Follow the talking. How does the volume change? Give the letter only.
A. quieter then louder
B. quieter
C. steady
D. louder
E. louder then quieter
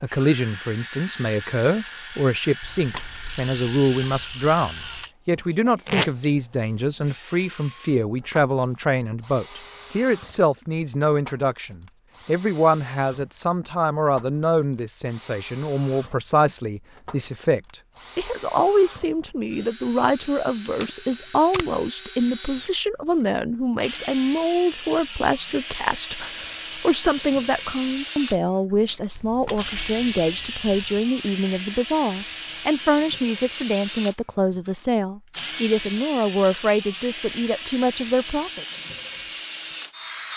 C.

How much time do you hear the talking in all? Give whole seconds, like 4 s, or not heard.
39 s.